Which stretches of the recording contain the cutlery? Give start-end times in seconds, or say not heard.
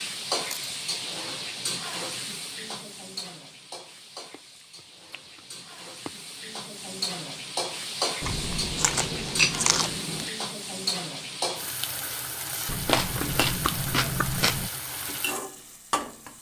not heard.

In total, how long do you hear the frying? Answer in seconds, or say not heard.
16 s.